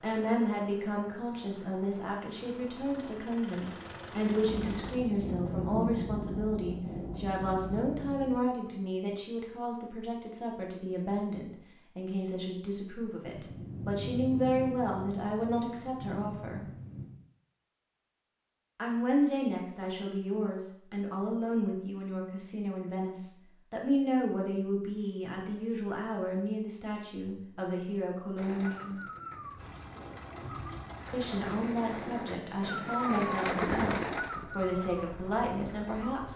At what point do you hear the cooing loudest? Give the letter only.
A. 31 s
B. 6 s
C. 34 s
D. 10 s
C.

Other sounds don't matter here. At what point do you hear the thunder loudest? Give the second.
6 s.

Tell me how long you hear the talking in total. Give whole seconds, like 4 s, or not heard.
32 s.